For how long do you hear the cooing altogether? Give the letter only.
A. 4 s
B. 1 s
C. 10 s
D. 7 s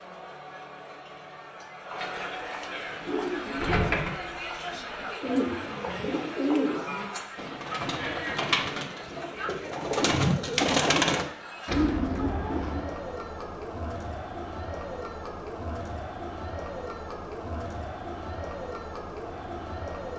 C.